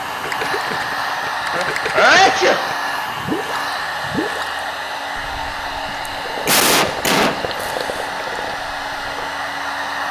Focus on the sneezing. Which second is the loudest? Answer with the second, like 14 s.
2 s.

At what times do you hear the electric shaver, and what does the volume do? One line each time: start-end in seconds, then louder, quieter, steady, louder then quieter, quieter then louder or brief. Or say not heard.
not heard.